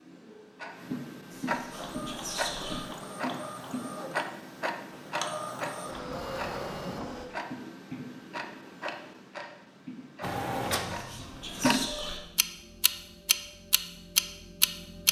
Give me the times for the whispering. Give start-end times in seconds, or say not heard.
1.3-2.9, 10.8-12.2.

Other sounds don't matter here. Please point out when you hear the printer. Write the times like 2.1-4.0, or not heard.
1.7-7.3, 10.2-12.1.